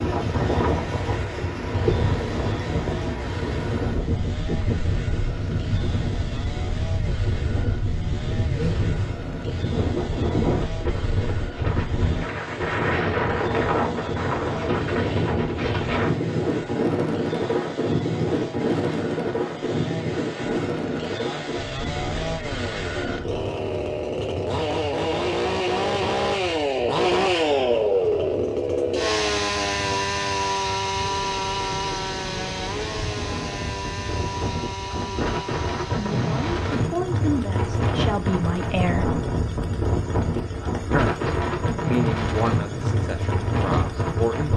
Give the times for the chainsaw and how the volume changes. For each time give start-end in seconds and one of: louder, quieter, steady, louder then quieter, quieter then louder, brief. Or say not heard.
0.2-44.5 louder then quieter.